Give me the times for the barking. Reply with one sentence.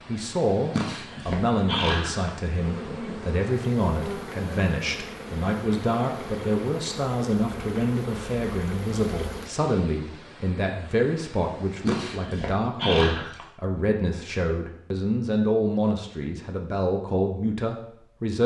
You can hear the barking from 0.7 to 2.3 s and from 11.8 to 13.4 s.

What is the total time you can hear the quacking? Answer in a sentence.
You can't hear the quacking here.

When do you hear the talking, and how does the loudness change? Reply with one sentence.
The talking can be heard from 0.1 to 18.4 s, at a steady volume.